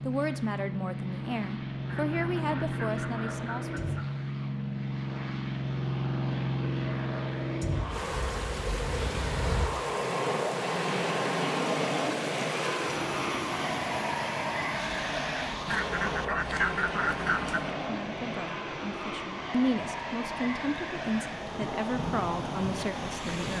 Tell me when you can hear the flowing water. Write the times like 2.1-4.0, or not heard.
7.9-23.5.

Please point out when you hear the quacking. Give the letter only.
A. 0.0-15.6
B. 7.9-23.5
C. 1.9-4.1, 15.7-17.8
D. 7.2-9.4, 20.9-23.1
C.